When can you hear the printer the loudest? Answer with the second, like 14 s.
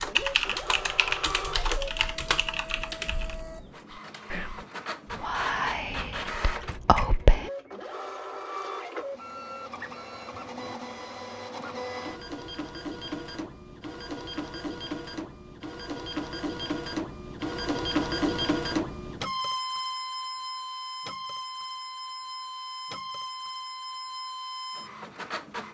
18 s.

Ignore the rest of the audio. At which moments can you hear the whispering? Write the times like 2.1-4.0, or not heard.
3.9-7.5.